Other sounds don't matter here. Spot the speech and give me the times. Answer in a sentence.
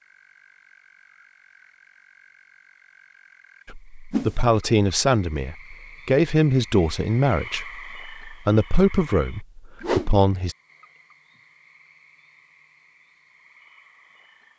You can hear the speech from 3.6 to 10.6 s.